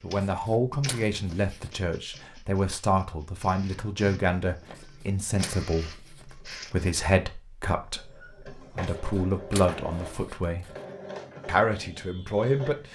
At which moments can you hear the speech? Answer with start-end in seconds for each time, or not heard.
0.0-10.8, 11.4-12.8.